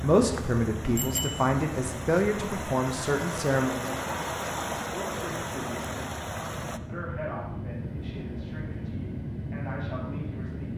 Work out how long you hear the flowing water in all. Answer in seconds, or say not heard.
7 s.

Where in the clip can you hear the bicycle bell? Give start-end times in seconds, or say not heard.
0.9-1.6.